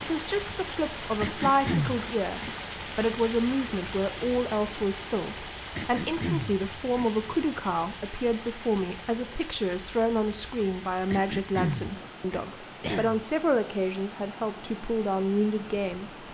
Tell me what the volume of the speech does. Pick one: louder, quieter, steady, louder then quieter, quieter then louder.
steady.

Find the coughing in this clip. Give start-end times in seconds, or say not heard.
1.2-2.5, 5.8-7.1, 11.1-13.2.